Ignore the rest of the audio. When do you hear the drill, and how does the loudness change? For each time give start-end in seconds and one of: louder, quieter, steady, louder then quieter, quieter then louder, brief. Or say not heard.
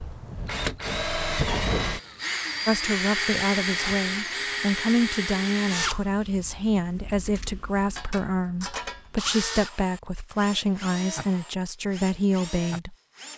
0.0-13.3 quieter.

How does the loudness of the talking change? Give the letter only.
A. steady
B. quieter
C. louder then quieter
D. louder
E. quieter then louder
A.